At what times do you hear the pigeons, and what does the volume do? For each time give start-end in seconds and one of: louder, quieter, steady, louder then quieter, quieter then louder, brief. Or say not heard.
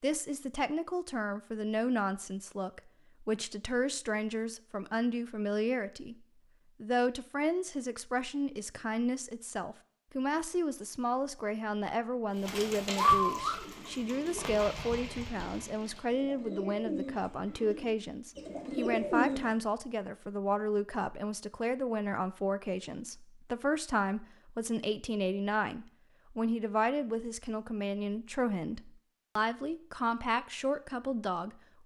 12.3-19.5 quieter then louder.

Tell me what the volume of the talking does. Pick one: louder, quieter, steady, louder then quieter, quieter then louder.
steady.